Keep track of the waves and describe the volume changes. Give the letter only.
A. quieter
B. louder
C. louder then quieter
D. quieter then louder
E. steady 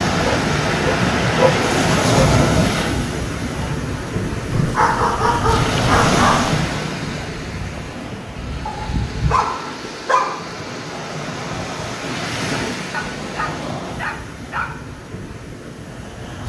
A.